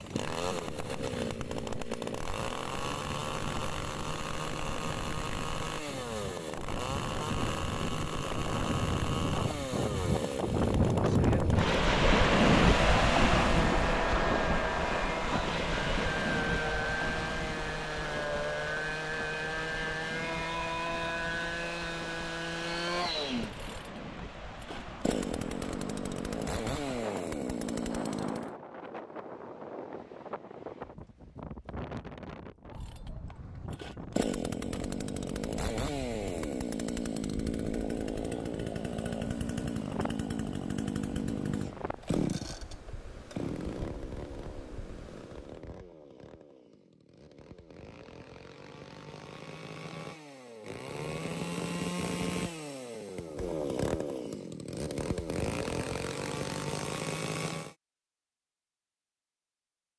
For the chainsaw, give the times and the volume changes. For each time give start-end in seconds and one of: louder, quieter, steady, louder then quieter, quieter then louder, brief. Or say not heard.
0.0-28.6 steady
32.8-57.8 quieter then louder.